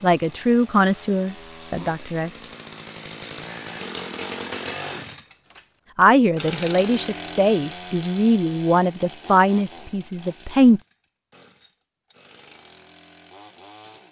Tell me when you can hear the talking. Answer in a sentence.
You can hear the talking from 0.0 to 2.5 s and from 6.0 to 10.8 s.